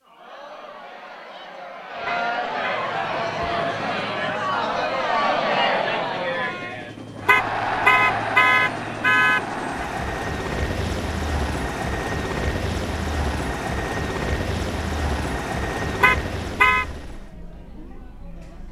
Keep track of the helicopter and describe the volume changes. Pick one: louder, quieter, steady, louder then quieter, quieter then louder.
louder.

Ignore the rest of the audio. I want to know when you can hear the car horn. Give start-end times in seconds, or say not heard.
2.0-2.9, 7.2-9.8, 15.9-16.9.